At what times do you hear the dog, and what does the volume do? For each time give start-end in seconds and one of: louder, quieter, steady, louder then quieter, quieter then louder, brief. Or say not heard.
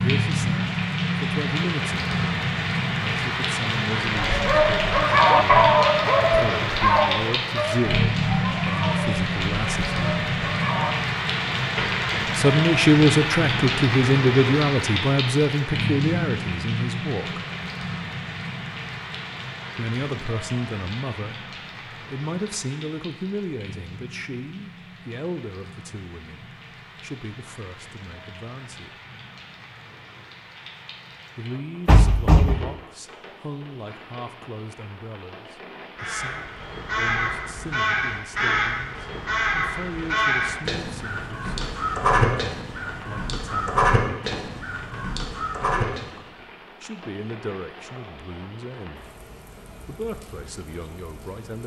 4.1-10.9 quieter.